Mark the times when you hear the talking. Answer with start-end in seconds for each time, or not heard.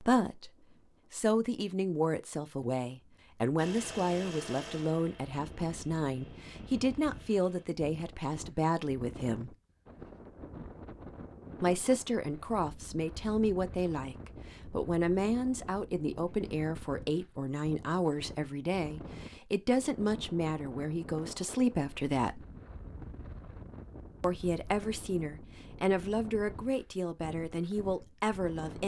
0.0-0.5, 1.1-9.6, 11.6-22.4, 24.2-28.8.